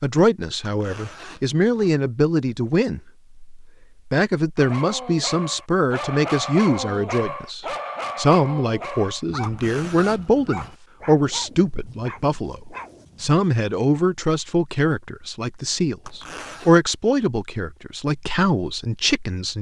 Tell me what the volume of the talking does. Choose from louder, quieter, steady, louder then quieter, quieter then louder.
steady.